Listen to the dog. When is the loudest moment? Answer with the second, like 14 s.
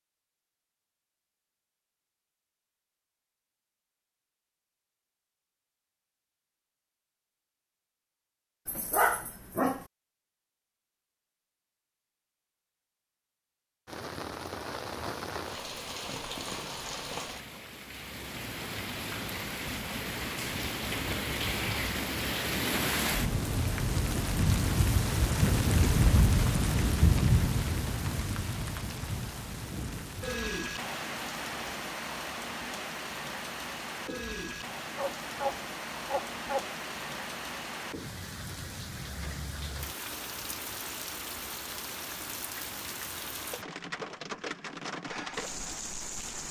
9 s.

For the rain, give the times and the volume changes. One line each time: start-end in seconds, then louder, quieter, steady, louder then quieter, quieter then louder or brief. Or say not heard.
13.8-46.4 louder then quieter.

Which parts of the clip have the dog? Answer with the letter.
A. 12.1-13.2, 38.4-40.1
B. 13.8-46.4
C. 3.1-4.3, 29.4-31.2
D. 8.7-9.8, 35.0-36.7
D.